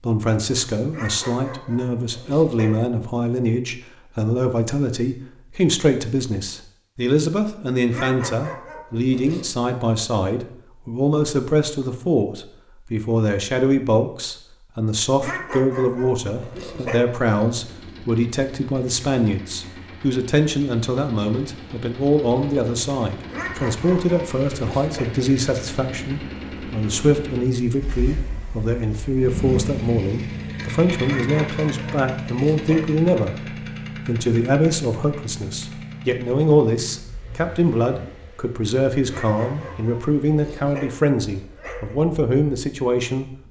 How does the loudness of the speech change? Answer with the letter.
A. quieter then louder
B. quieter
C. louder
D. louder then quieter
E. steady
E.